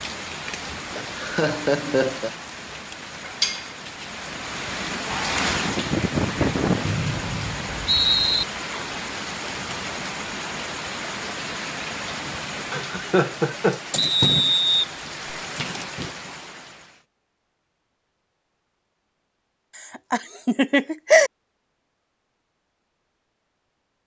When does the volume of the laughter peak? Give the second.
21 s.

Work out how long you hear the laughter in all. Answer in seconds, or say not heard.
4 s.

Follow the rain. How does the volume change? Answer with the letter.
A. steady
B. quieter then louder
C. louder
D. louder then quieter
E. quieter
A.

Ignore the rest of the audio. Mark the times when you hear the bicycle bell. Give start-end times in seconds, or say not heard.
not heard.